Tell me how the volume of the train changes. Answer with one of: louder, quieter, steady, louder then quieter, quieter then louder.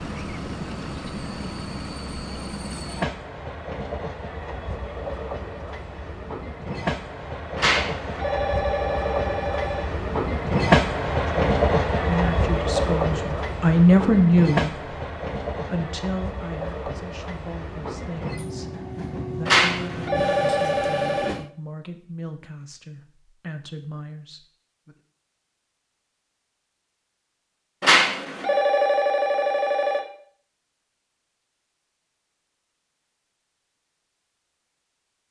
louder then quieter.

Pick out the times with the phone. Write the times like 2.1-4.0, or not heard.
7.5-9.9, 19.4-21.4, 27.8-30.1.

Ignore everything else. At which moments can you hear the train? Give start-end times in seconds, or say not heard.
0.0-21.5.